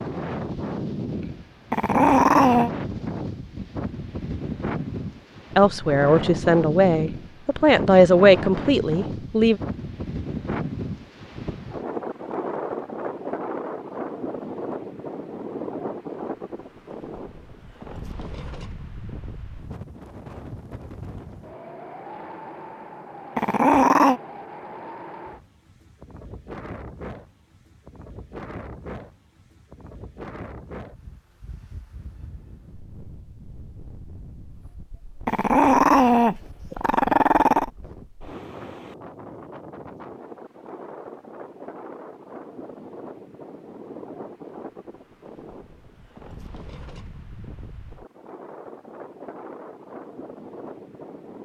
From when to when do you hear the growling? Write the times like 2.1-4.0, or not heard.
1.7-2.7, 23.4-24.2, 35.2-37.7.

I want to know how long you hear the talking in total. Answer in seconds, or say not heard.
4 s.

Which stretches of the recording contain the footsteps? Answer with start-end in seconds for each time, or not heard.
not heard.